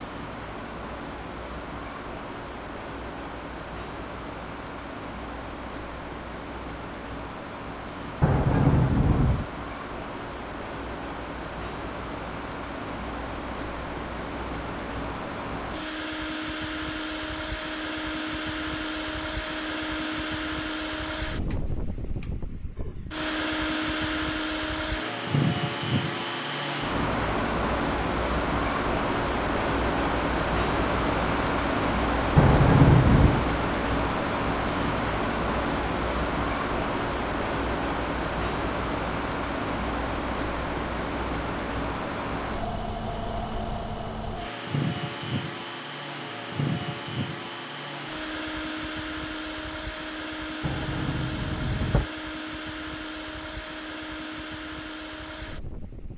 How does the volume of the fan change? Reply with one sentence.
The volume of the fan goes up, then down.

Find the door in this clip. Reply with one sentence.
You can hear the door from 8.2 to 9.4 s, from 32.4 to 33.5 s and from 50.6 to 52.0 s.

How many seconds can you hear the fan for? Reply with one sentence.
The fan can be heard for 56 seconds in total.